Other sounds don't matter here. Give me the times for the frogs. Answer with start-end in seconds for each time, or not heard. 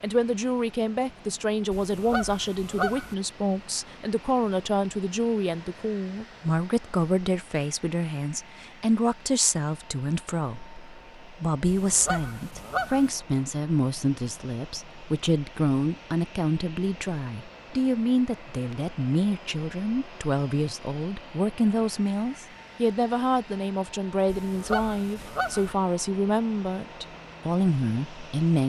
not heard.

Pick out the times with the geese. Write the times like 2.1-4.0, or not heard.
1.7-3.1, 11.7-13.1, 24.3-25.8.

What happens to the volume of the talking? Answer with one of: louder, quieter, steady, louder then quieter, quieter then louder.
steady.